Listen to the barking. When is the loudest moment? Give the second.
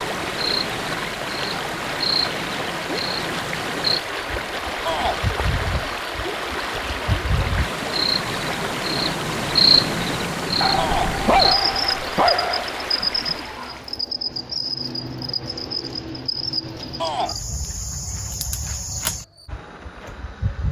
11 s.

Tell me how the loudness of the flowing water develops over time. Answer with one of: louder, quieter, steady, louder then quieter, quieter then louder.
steady.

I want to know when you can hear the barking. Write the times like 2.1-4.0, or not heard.
10.6-12.8.